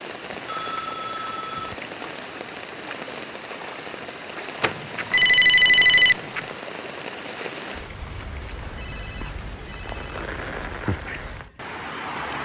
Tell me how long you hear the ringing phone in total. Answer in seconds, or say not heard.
5 s.